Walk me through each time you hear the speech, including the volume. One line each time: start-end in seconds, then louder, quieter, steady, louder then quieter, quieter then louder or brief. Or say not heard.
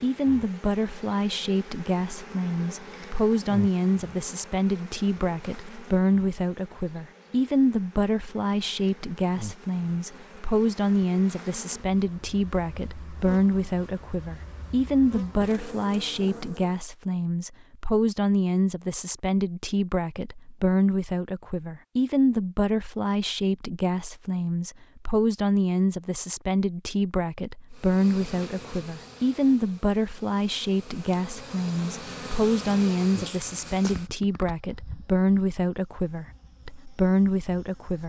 0.0-38.0 steady.